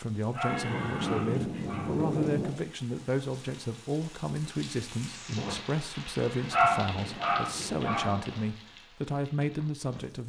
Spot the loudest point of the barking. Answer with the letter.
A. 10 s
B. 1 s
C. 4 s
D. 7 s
D.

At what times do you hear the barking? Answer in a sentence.
The barking can be heard from 0.3 to 2.0 s and from 6.5 to 8.4 s.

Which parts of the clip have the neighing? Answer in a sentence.
You can hear the neighing from 0.5 to 2.5 s and from 6.2 to 8.2 s.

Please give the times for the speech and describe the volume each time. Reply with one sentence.
The speech can be heard from 0.0 to 10.2 s, at a steady volume.